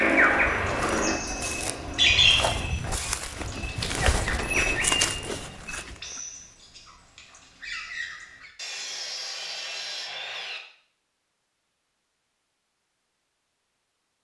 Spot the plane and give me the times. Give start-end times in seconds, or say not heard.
0.0-2.7.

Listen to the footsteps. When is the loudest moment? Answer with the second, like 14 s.
5 s.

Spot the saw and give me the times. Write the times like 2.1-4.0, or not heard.
3.5-5.5, 8.6-10.6.